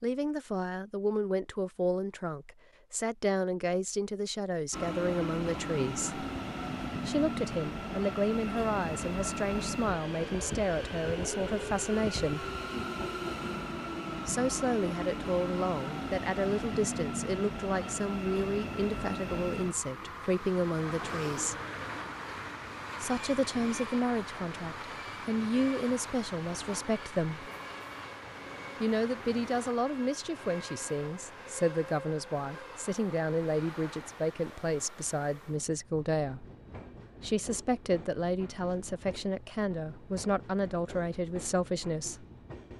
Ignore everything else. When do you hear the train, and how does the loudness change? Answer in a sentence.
The train can be heard from 4.7 to 42.7 s, getting quieter.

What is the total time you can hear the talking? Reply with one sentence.
The talking can be heard for 36 seconds in total.